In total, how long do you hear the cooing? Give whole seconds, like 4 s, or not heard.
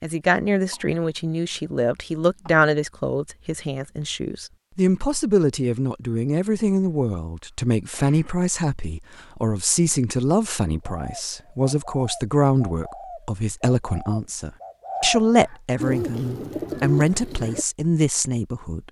7 s.